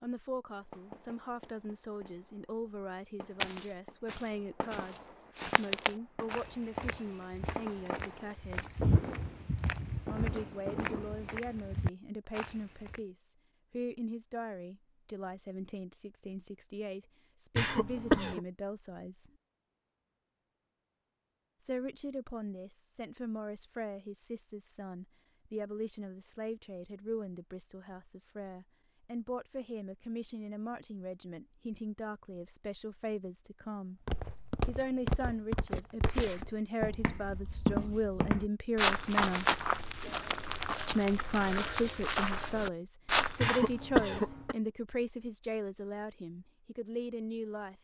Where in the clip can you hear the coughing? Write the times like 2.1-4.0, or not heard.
17.6-18.4, 43.4-44.5.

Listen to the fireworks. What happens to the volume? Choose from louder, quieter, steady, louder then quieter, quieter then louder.
louder.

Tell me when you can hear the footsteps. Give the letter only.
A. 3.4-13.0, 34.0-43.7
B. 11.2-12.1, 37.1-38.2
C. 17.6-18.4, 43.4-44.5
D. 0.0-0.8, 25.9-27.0
A.